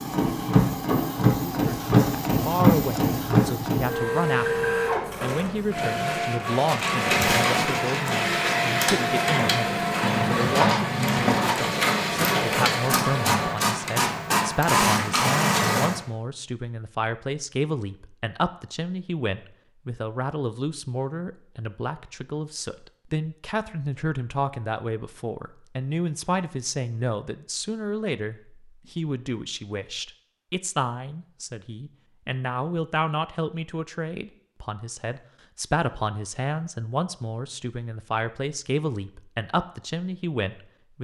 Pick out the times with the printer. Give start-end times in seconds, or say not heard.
0.0-16.0.